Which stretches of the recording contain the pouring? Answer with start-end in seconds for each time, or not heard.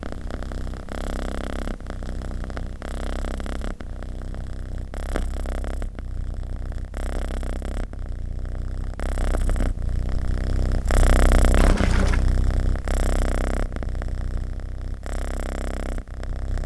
11.6-12.2.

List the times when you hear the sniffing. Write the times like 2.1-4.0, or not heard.
not heard.